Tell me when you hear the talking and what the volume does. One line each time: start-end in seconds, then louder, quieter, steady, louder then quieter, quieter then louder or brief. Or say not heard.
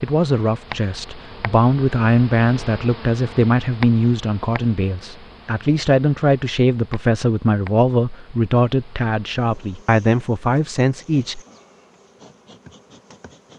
0.0-11.4 steady.